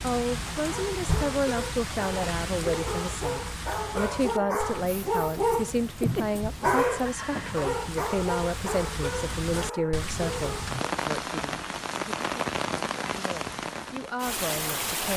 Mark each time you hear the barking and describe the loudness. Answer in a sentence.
You can hear the barking from 0.7 to 10.8 s, getting louder then quieter.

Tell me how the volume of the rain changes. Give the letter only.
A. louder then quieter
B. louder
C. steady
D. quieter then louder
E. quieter
D.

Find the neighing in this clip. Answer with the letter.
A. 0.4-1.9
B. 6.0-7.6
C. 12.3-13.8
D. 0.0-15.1
B.